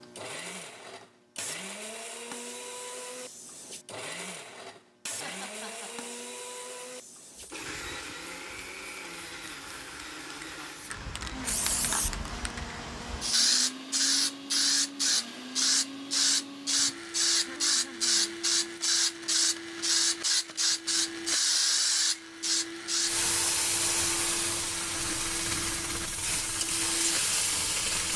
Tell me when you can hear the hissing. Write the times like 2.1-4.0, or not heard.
0.0-28.1.